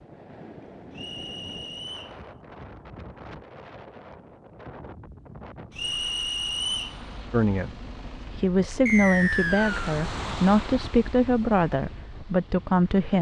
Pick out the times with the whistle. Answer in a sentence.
You can hear the whistle from 0.9 to 2.1 s, from 5.8 to 7.0 s and from 8.8 to 9.9 s.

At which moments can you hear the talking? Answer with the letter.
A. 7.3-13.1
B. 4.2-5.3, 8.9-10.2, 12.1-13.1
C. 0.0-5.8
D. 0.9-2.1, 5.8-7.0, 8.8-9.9
A.